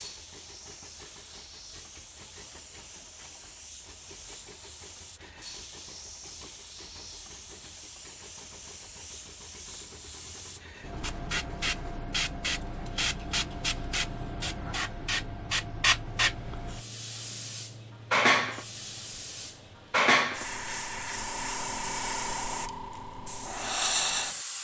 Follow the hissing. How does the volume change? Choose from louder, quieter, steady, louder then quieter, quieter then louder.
louder.